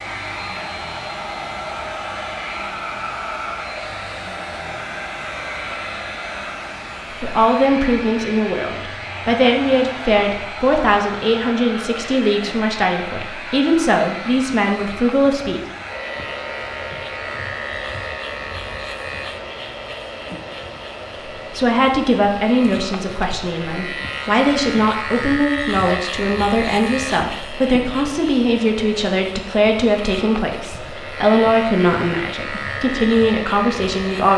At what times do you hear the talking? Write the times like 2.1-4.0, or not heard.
7.2-15.6, 21.5-34.3.